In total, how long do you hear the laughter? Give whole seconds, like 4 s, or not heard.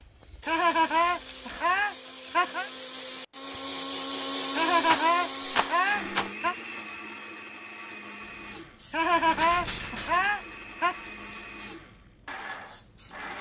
6 s.